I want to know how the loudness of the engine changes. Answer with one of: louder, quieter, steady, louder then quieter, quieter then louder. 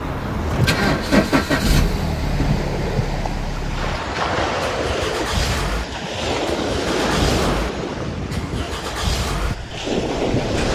quieter.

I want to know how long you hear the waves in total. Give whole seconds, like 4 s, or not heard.
11 s.